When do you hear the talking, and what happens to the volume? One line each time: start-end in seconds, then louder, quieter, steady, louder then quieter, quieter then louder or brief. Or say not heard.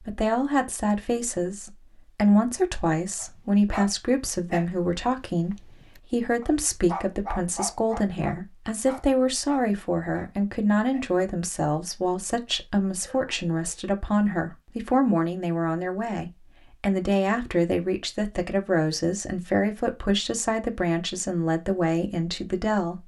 0.0-23.0 steady.